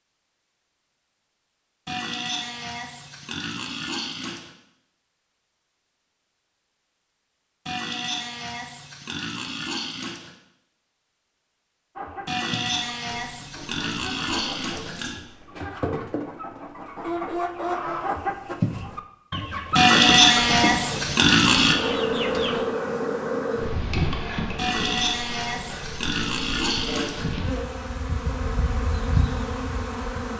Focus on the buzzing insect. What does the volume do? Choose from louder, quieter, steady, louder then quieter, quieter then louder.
quieter then louder.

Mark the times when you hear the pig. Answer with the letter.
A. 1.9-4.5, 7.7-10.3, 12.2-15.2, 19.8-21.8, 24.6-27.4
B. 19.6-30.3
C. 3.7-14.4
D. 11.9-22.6
A.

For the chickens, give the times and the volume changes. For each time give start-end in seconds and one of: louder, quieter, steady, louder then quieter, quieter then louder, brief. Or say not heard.
11.9-22.6 louder.